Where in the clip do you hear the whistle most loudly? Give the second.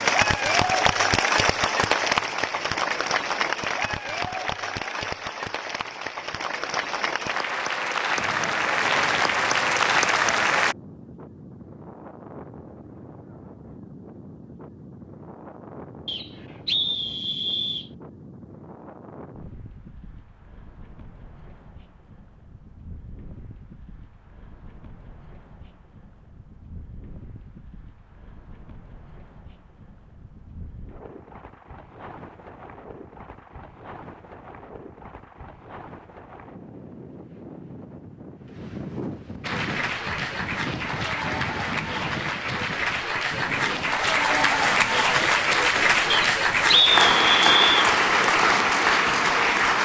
47 s.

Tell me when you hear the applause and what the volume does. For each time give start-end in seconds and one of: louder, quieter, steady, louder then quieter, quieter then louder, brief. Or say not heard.
0.0-10.8 quieter then louder
39.4-49.7 louder.